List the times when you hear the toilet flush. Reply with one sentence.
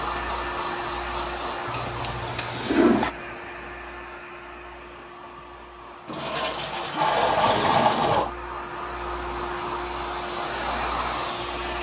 The toilet flush can be heard from 1.6 to 3.1 s and from 6.0 to 8.3 s.